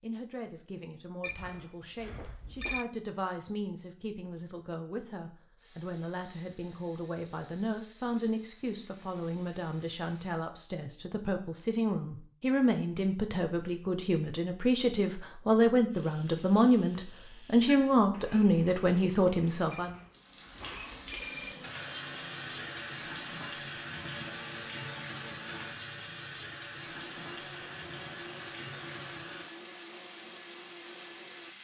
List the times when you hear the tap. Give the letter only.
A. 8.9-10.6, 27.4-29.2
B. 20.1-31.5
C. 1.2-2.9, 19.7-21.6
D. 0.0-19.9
B.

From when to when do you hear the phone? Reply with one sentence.
You can hear the phone from 1.2 to 2.9 s and from 19.7 to 21.6 s.